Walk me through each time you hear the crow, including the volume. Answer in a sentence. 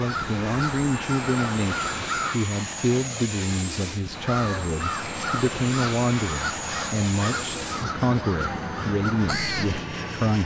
You can hear the crow briefly from 0.0 to 2.4 s; and from 4.1 to 9.8 s, at a steady volume.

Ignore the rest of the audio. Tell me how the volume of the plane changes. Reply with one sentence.
The volume of the plane stays about the same.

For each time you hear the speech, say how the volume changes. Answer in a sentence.
You can hear the speech from 0.0 to 10.4 s, at a steady volume.